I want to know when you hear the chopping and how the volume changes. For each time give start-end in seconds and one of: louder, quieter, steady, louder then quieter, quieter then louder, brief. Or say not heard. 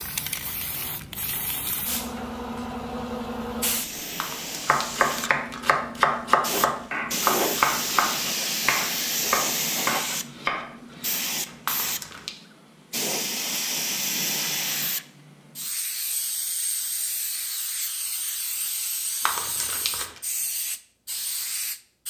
4.7-11.8 quieter.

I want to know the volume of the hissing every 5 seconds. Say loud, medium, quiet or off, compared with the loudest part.
medium, loud, loud, medium, medium.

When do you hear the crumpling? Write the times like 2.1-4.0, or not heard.
4.2-5.8, 11.7-12.3, 19.2-20.2.